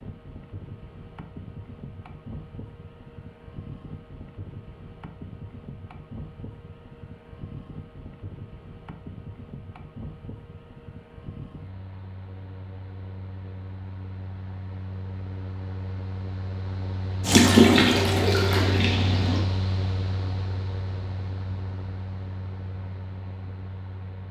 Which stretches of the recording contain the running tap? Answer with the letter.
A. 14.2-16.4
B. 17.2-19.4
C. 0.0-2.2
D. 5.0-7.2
B.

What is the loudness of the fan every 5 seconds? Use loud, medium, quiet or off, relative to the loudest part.
medium, medium, medium, loud, medium.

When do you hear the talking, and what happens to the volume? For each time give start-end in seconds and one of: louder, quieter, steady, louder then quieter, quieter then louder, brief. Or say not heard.
not heard.